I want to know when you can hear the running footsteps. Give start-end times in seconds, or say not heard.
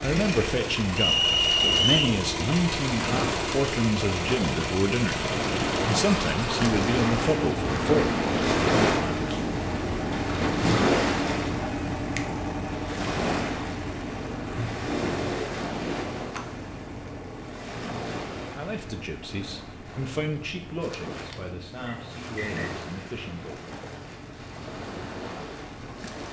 not heard.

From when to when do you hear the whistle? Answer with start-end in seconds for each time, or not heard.
0.9-2.1, 21.9-22.7.